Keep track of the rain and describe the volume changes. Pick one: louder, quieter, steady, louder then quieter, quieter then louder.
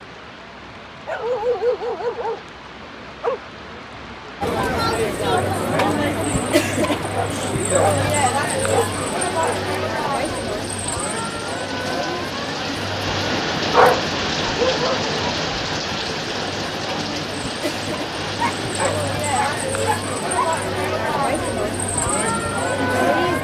louder then quieter.